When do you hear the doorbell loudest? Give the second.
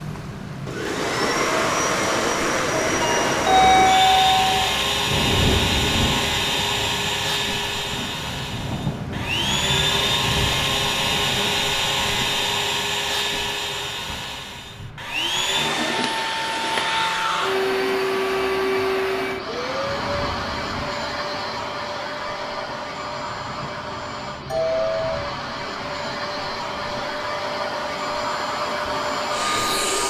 4 s.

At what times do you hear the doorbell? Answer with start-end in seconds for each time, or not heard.
3.0-4.5, 24.4-25.1.